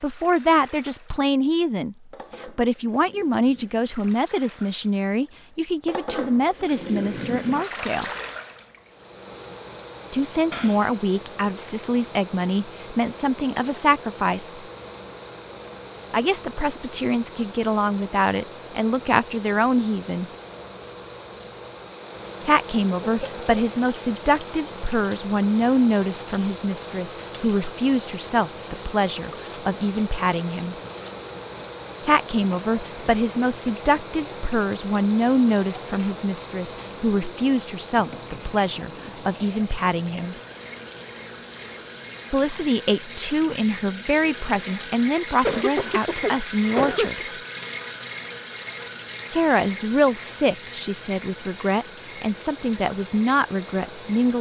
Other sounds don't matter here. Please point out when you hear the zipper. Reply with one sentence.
You can't hear the zipper here.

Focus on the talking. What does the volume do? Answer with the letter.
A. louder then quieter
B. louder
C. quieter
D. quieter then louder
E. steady
E.